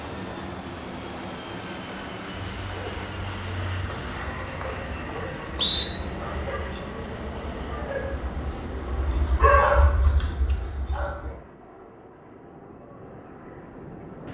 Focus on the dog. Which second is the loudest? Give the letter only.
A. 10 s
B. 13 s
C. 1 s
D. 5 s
A.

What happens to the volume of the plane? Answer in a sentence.
The loudness of the plane goes down.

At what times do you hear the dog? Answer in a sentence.
The dog can be heard from 2.5 to 11.3 s.